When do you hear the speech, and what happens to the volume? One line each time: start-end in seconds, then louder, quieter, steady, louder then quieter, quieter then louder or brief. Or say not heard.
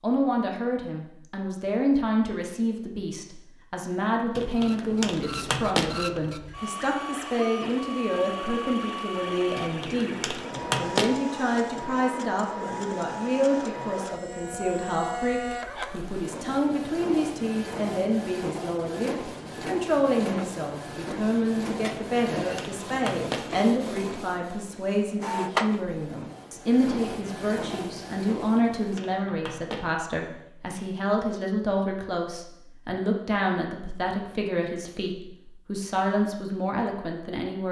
0.0-37.6 steady.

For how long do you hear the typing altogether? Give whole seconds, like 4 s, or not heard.
6 s.